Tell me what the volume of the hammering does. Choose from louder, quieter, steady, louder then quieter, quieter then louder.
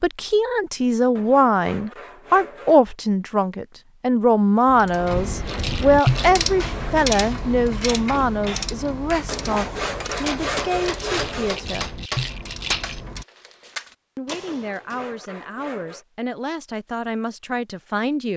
louder then quieter.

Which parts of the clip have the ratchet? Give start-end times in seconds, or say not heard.
4.7-13.2.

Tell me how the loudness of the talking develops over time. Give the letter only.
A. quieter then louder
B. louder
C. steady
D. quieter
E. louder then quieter
D.